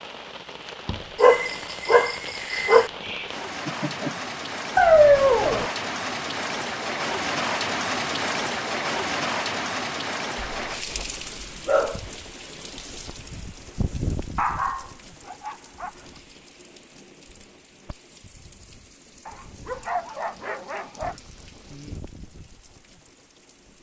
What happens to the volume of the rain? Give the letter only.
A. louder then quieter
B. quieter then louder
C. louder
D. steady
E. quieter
A.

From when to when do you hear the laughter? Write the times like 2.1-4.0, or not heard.
3.0-4.2.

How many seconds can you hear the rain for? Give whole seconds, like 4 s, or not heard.
24 s.